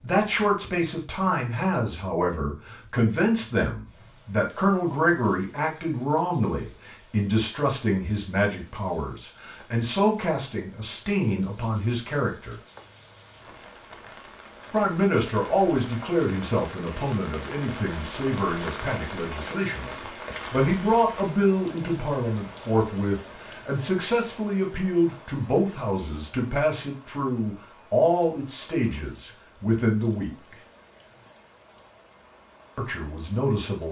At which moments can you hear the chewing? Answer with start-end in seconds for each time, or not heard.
not heard.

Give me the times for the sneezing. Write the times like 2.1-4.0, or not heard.
not heard.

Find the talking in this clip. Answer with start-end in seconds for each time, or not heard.
0.0-12.6, 14.7-30.6, 32.8-33.8.